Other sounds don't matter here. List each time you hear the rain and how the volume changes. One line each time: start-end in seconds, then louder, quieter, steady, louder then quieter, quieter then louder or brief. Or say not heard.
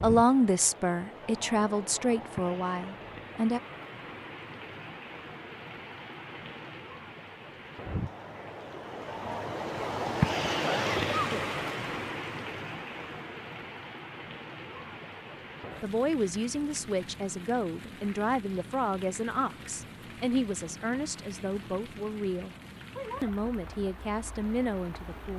0.0-25.3 louder then quieter.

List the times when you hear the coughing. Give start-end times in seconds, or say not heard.
10.6-11.6.